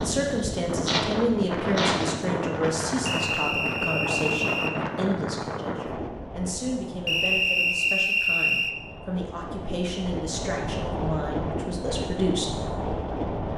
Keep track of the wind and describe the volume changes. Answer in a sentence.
The loudness of the wind goes down, then up.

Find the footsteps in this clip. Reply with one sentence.
The footsteps can't be heard in this clip.